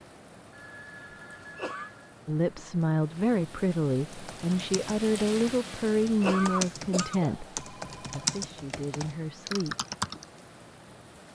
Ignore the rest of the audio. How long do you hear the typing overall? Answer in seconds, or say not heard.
6 s.